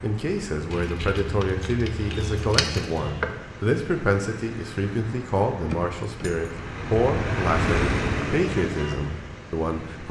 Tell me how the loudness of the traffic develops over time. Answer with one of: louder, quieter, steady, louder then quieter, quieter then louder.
louder.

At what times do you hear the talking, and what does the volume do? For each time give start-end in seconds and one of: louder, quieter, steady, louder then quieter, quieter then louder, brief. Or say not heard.
0.0-10.0 steady.